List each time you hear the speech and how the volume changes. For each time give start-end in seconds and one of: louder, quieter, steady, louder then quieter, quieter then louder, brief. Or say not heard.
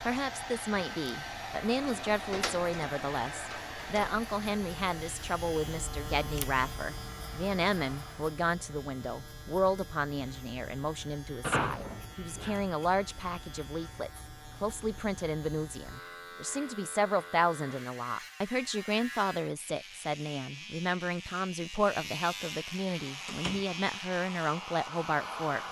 0.0-25.6 steady.